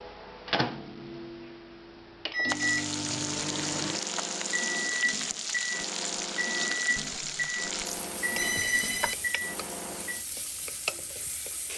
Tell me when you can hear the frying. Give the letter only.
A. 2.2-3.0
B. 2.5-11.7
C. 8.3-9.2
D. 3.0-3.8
B.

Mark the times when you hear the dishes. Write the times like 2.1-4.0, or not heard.
not heard.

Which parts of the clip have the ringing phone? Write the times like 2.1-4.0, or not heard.
8.3-9.2.